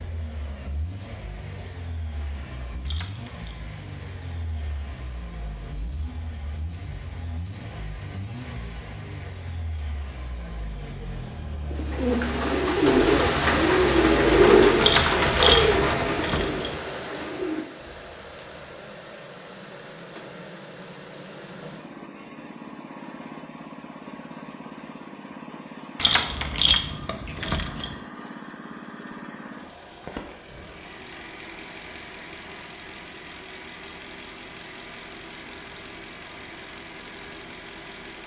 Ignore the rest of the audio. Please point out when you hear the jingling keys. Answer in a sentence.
The jingling keys can be heard from 2.9 to 3.5 s, from 14.8 to 16.8 s and from 25.9 to 27.9 s.